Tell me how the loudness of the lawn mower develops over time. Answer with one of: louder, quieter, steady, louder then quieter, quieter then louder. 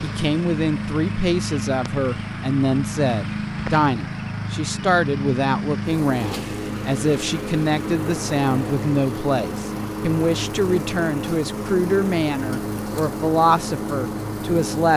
steady.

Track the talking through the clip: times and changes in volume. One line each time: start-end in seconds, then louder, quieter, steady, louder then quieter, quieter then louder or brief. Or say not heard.
0.0-14.9 steady.